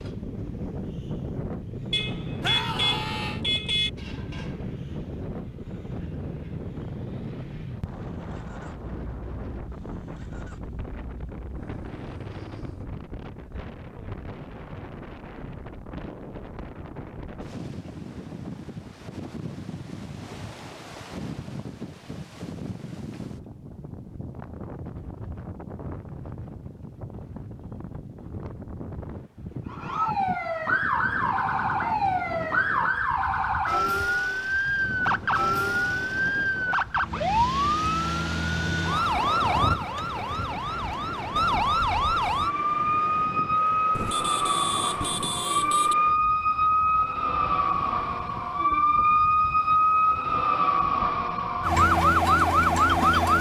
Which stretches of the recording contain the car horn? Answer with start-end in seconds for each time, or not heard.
1.9-3.9, 43.9-46.0.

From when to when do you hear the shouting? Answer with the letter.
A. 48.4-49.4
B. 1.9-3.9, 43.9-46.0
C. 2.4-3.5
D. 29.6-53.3
C.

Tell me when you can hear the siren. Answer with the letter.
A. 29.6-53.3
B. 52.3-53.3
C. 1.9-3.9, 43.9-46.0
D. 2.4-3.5
A.